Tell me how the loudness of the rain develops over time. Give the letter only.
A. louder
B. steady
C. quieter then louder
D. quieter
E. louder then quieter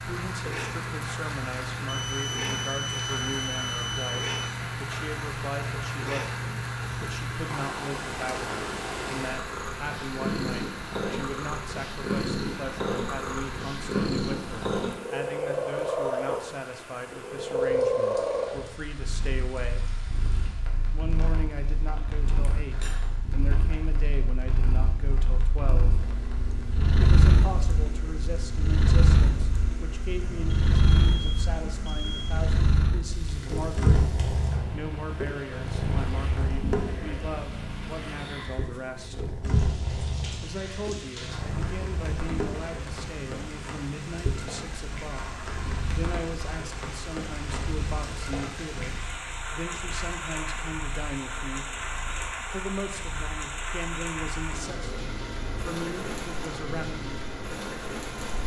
C.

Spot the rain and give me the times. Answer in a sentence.
You can hear the rain from 0.0 to 58.4 s.